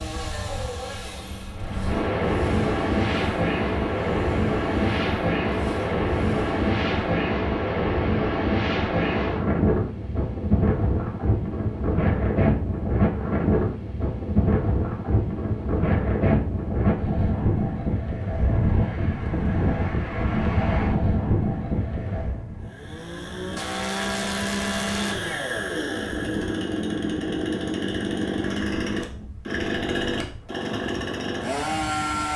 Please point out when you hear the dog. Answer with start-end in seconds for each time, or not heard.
not heard.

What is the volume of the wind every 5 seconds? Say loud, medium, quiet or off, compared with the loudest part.
loud, loud, loud, loud, medium, quiet, quiet.